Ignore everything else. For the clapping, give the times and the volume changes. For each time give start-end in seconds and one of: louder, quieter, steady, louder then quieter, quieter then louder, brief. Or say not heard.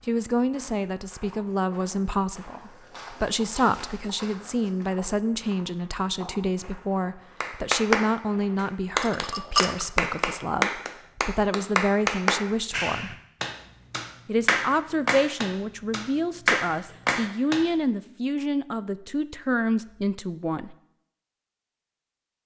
7.4-17.6 steady.